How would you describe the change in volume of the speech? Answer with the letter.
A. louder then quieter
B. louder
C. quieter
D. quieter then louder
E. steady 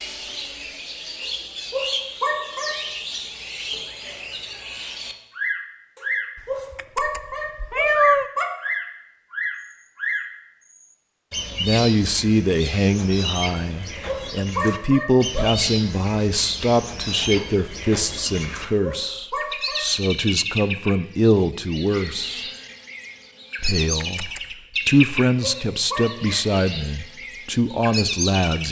E.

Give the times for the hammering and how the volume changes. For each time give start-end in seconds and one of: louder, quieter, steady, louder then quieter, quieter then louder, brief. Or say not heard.
not heard.